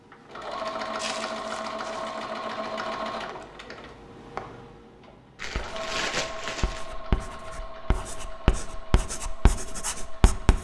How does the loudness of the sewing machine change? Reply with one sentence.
The loudness of the sewing machine goes down.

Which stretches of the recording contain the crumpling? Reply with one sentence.
You can hear the crumpling from 0.9 to 2.1 s and from 5.3 to 6.9 s.